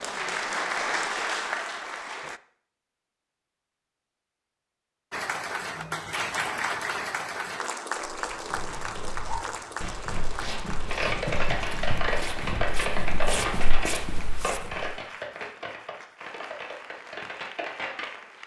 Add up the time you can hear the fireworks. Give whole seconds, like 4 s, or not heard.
8 s.